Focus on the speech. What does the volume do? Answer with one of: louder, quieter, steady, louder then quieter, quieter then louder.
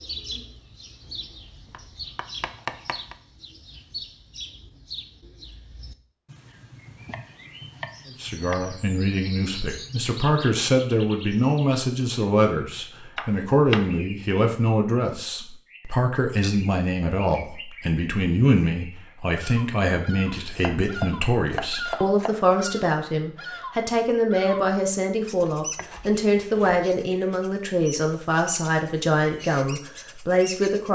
steady.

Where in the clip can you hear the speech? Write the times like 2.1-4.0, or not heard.
8.2-30.9.